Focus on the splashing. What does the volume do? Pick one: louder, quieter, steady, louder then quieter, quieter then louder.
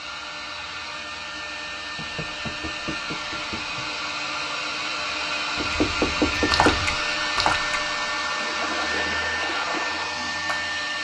quieter then louder.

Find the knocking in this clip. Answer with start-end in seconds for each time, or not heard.
1.9-3.9, 5.5-7.0.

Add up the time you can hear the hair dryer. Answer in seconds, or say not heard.
11 s.